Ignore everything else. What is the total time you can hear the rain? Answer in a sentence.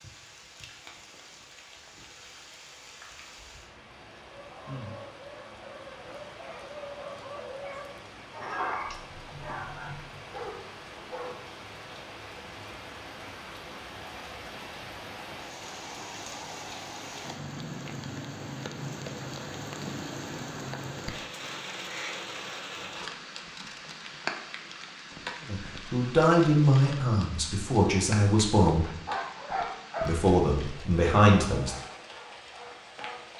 The rain can be heard for 33 seconds in total.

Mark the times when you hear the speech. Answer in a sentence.
You can hear the speech from 25.4 to 28.9 s and from 30.1 to 31.8 s.